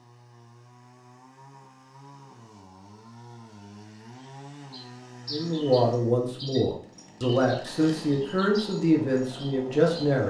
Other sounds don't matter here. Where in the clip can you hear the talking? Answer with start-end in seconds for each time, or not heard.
5.3-10.2.